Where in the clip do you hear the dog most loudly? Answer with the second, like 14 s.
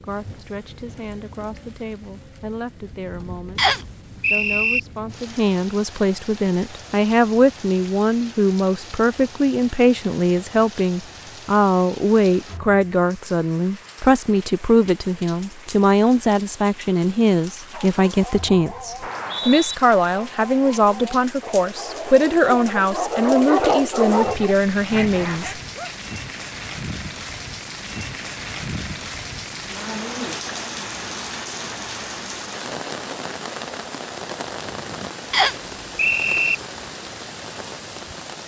24 s.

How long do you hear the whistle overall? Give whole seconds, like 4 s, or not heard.
3 s.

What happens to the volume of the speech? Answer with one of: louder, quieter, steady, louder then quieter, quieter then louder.
louder.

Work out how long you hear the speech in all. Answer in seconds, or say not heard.
25 s.